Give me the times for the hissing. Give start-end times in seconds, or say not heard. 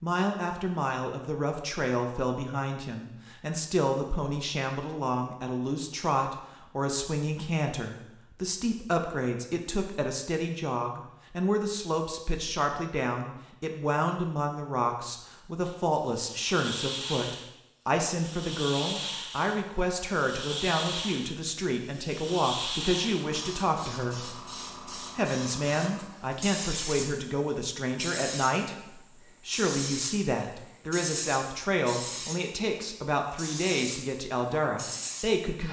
15.6-35.6.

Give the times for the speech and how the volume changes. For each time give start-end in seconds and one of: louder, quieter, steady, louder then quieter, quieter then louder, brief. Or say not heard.
0.0-35.6 steady.